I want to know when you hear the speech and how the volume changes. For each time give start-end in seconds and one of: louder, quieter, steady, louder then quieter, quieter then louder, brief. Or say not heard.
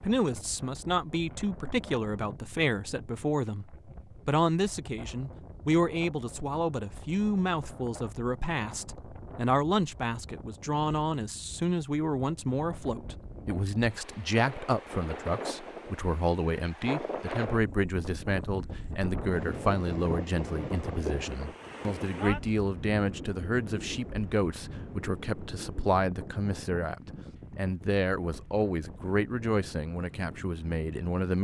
0.0-31.4 steady.